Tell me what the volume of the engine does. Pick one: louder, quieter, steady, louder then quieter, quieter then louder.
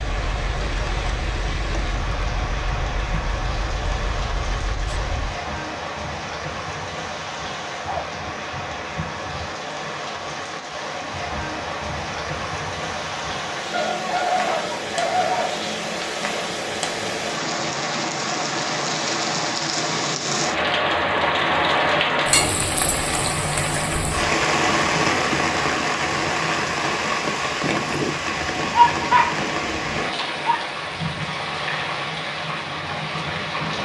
steady.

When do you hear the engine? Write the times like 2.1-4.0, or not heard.
0.0-5.3.